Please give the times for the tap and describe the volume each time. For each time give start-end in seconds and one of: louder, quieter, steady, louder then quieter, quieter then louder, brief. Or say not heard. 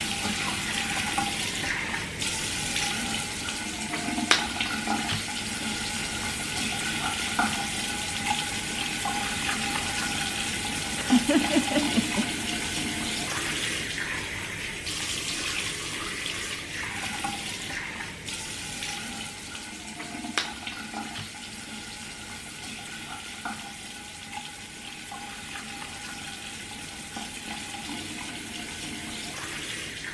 0.0-30.1 quieter.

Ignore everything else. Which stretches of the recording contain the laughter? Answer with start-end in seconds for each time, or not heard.
10.9-12.2.